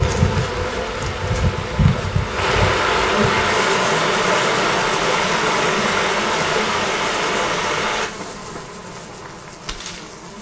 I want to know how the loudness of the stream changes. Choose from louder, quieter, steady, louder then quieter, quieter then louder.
louder.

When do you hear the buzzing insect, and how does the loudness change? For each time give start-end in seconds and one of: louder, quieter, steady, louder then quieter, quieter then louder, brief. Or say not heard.
0.0-10.3 quieter.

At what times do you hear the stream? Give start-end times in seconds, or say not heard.
0.0-8.1.